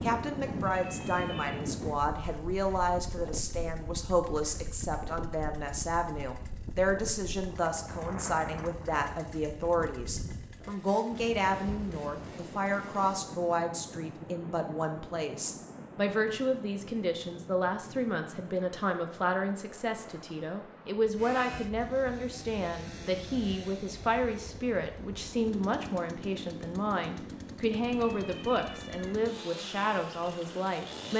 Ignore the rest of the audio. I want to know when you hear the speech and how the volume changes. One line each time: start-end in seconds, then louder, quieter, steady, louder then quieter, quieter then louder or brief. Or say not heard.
0.0-31.1 steady.